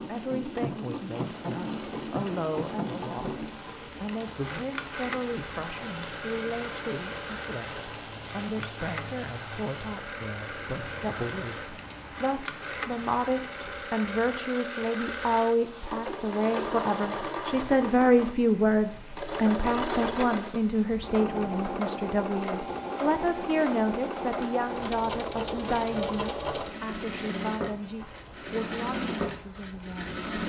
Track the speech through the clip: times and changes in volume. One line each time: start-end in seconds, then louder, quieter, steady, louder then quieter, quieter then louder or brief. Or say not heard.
0.0-30.1 louder then quieter.